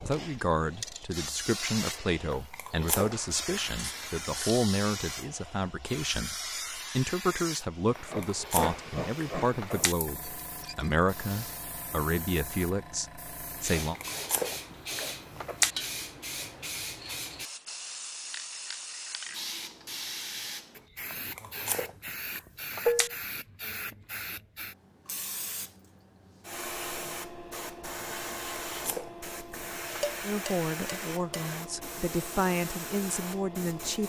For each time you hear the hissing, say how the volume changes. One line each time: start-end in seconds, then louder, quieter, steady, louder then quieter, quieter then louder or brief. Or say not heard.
0.0-34.0 steady.